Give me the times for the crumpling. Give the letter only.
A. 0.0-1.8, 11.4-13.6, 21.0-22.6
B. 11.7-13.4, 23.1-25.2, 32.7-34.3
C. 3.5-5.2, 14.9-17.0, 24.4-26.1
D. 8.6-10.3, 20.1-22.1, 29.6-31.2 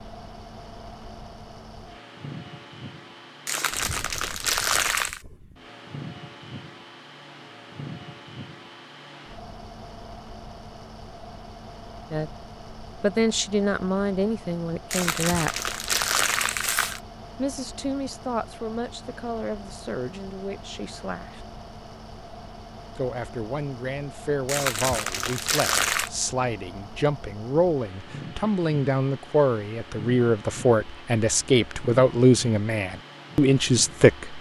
C.